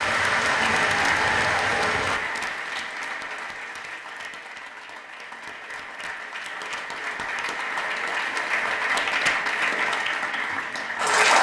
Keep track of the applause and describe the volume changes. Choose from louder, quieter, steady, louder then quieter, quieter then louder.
quieter then louder.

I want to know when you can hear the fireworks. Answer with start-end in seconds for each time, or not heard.
0.0-2.2.